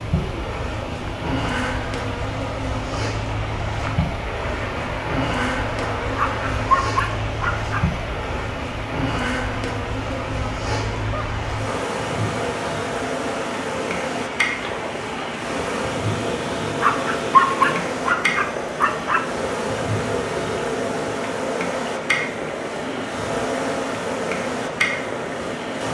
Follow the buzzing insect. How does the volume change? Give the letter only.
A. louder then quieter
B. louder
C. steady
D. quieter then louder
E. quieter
C.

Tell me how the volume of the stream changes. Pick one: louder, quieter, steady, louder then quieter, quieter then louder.
steady.